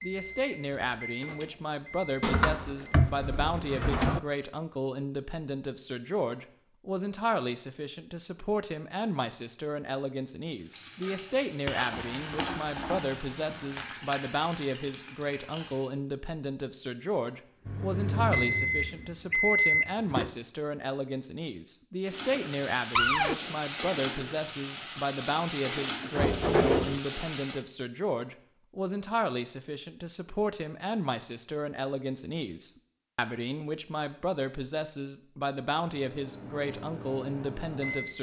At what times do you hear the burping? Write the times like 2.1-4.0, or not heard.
not heard.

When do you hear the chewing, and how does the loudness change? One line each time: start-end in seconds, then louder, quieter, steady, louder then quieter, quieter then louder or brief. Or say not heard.
not heard.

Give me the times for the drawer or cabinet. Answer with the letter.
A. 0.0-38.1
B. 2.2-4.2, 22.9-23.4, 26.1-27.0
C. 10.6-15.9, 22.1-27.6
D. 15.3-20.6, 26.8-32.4
B.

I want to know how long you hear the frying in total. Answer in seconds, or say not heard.
11 s.